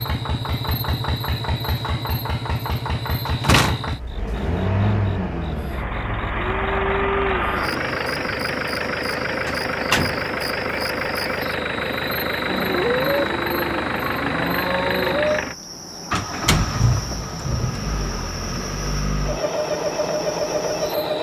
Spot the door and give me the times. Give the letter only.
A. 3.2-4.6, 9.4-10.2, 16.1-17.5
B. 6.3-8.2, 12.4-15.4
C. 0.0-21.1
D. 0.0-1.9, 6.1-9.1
A.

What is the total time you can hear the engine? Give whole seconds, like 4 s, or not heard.
21 s.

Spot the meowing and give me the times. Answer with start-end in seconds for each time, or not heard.
not heard.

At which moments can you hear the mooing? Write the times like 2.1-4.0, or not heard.
6.3-8.2, 12.4-15.4.